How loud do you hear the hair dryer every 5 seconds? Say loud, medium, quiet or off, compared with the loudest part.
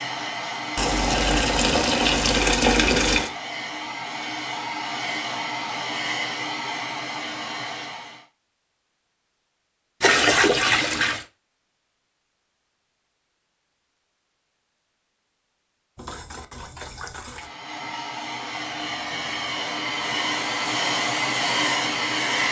medium, medium, off, medium, loud.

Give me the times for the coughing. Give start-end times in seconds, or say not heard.
not heard.